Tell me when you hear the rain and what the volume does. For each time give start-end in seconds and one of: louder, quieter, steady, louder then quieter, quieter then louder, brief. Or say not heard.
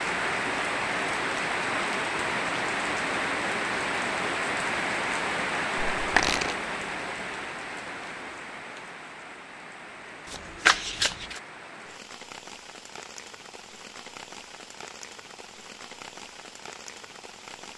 0.0-17.7 quieter.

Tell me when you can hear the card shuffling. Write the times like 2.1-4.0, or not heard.
6.0-6.5, 10.2-11.4.